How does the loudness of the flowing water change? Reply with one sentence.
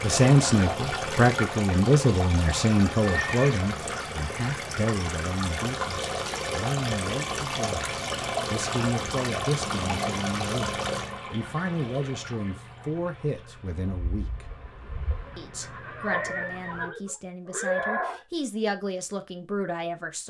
The volume of the flowing water goes down.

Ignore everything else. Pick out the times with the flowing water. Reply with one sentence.
The flowing water can be heard from 0.0 to 16.9 s.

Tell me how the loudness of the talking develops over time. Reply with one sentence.
The volume of the talking goes down.